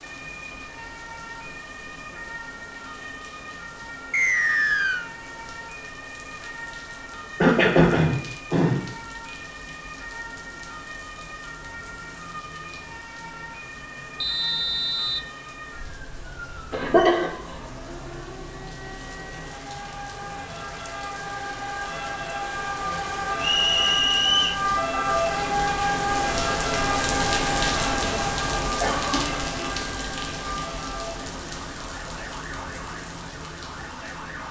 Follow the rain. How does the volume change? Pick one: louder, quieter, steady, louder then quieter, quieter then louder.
louder.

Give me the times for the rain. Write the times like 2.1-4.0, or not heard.
0.0-34.4.